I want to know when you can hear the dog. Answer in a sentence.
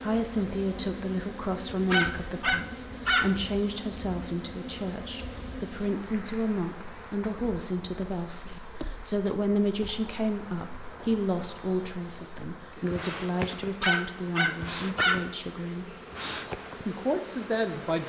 The dog can be heard from 1.9 to 3.3 s and from 13.8 to 15.2 s.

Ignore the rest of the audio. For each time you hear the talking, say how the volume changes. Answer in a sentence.
You can hear the talking from 0.0 to 18.0 s, at a steady volume.